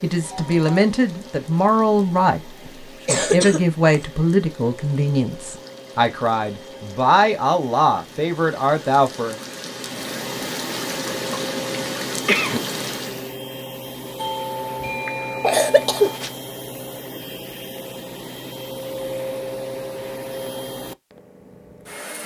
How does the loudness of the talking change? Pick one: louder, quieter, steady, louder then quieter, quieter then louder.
steady.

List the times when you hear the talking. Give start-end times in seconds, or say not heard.
0.0-9.3.